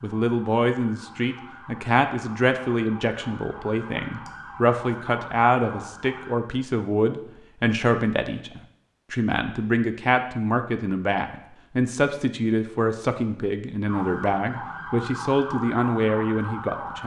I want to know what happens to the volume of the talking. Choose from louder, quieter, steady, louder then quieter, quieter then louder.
steady.